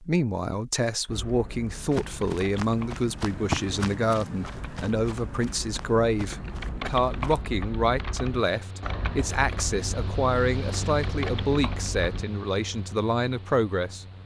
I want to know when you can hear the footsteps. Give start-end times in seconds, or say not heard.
1.7-7.5.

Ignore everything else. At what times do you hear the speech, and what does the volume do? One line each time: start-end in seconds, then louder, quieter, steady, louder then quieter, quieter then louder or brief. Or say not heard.
0.0-14.1 steady.